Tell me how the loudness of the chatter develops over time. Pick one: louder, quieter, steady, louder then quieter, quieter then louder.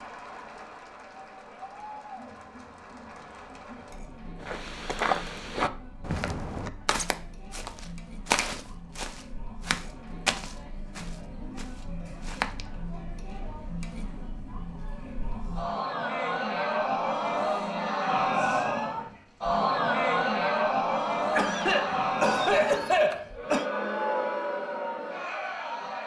louder.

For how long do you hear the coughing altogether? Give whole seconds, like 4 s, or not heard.
2 s.